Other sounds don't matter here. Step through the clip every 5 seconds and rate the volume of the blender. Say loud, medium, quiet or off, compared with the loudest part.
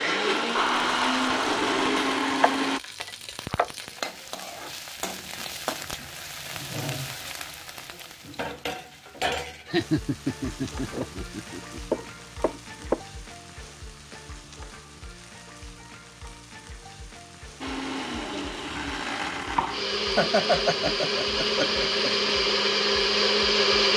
loud, off, off, medium, loud.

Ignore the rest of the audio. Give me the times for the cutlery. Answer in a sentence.
The cutlery can't be heard in this clip.